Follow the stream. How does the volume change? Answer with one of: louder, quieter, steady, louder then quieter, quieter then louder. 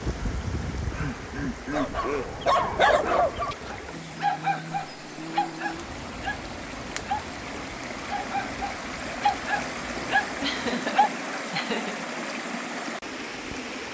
louder.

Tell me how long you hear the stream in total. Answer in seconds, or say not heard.
14 s.